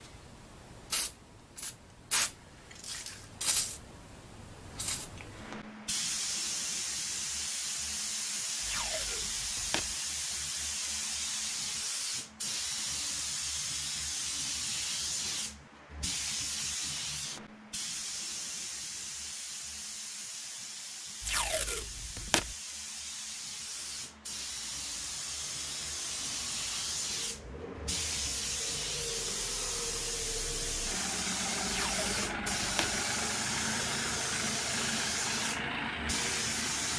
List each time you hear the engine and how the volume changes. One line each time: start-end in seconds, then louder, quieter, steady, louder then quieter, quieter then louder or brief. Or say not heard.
23.7-36.9 louder.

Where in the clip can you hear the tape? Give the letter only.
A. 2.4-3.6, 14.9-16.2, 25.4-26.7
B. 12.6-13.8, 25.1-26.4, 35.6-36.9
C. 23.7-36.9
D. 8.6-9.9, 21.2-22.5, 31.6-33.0
D.